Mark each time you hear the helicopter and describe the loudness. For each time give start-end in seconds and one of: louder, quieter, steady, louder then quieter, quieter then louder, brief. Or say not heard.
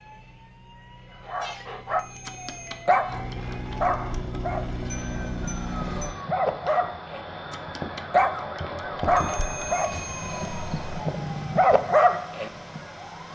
0.0-6.2 louder.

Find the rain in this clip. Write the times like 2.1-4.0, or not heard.
not heard.